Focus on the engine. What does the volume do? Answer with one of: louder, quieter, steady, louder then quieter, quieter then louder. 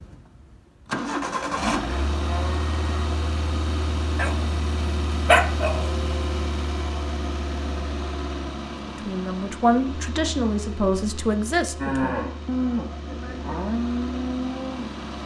quieter.